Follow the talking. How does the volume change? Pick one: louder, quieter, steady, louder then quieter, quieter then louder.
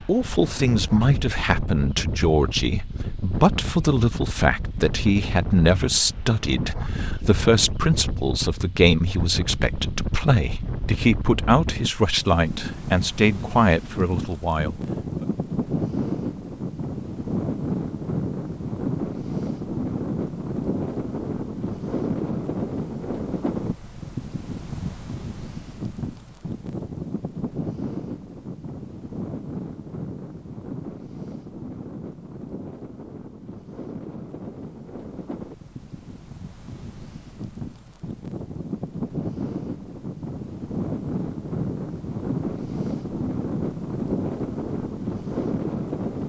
steady.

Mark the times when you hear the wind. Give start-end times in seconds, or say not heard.
0.0-46.2.